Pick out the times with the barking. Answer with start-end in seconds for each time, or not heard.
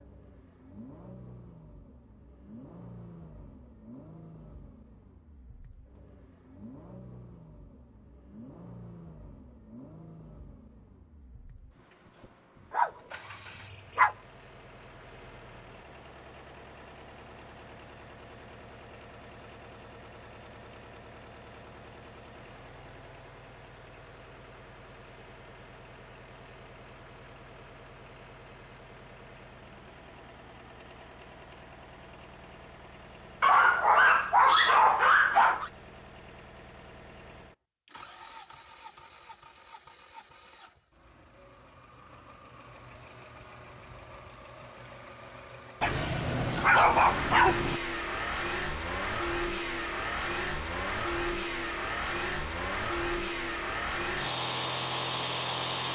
12.7-14.2, 33.4-35.7, 45.8-47.8.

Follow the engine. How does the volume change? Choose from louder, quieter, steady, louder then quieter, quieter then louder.
louder.